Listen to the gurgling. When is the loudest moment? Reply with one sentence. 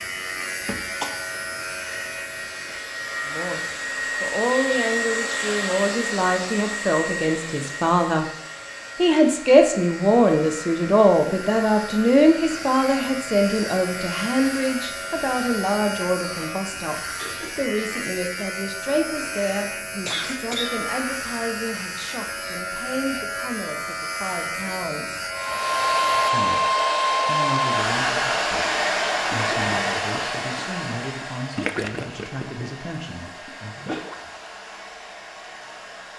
The loudest moment of the gurgling is at 32 seconds.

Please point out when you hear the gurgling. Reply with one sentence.
The gurgling can be heard from 29.3 to 34.4 s.